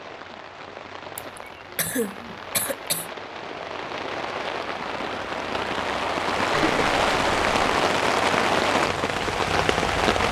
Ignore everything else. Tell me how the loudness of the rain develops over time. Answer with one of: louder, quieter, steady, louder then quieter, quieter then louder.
louder.